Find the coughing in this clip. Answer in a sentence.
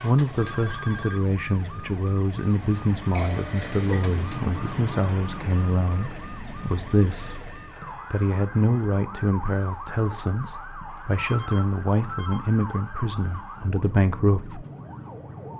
The coughing can be heard from 3.1 to 4.1 s.